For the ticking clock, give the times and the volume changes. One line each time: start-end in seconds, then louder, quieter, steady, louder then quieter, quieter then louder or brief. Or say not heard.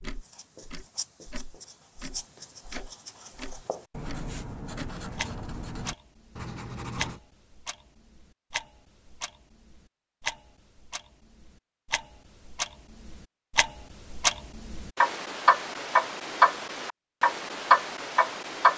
0.0-18.7 louder.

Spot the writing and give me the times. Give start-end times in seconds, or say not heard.
0.0-7.2.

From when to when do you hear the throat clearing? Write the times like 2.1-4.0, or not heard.
not heard.